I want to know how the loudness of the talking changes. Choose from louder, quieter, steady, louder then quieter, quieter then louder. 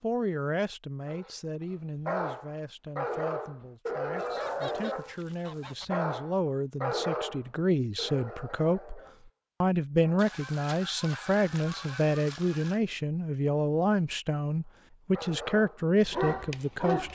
louder.